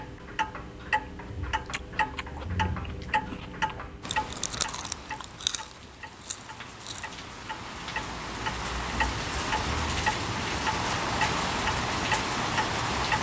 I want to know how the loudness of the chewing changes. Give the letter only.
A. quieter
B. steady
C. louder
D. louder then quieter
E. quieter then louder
D.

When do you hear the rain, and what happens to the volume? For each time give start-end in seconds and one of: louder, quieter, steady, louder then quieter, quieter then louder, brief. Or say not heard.
4.0-13.1 louder.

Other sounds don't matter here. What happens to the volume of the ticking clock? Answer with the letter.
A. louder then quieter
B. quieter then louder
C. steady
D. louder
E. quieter
B.